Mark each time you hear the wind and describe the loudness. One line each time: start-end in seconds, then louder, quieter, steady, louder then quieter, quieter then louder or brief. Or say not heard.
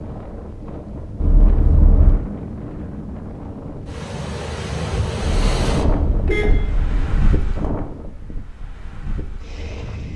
0.0-10.1 louder then quieter.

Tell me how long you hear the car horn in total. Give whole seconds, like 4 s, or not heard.
3 s.